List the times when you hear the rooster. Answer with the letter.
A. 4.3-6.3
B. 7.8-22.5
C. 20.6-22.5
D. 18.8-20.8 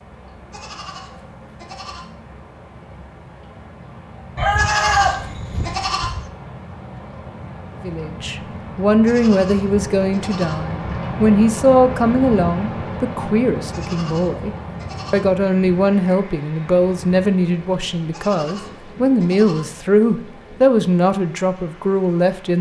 A.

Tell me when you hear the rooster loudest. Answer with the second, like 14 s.
5 s.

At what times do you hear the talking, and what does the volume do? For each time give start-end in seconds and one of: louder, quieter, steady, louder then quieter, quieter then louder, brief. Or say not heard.
7.8-22.5 steady.